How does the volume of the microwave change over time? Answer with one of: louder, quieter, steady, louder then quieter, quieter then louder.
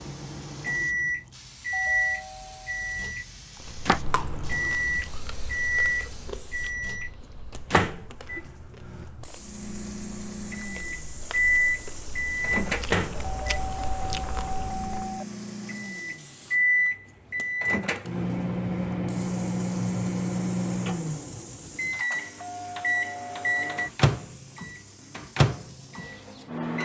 steady.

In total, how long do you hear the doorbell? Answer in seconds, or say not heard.
5 s.